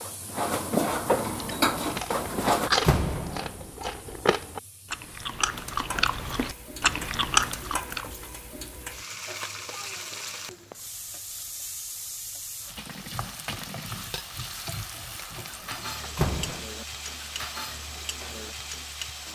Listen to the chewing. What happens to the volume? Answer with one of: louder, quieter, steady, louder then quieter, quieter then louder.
quieter then louder.